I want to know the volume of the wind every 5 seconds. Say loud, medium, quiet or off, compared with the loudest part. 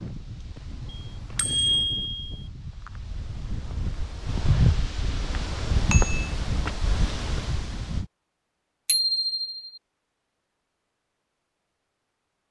loud, loud, off.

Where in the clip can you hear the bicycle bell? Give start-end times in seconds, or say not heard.
0.9-2.4, 5.0-6.3, 8.8-9.8.